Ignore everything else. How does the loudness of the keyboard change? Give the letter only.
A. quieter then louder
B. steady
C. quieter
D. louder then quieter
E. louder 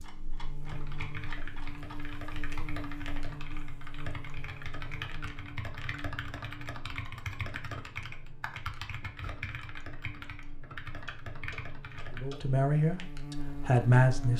B.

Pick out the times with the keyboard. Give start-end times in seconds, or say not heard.
0.6-12.2.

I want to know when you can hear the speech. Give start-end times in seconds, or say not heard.
12.2-14.3.